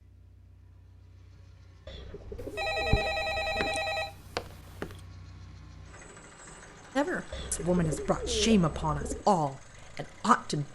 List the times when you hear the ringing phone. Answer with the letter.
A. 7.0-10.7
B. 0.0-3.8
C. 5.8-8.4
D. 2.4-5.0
D.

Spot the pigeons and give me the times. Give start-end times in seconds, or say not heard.
1.9-3.8, 7.3-9.2.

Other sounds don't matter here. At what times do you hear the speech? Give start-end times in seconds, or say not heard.
7.0-10.7.